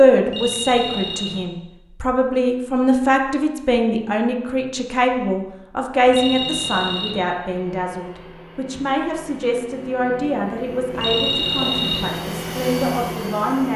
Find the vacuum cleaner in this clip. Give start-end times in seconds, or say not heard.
6.4-13.7.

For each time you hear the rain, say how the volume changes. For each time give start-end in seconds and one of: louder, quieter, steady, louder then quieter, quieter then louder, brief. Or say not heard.
not heard.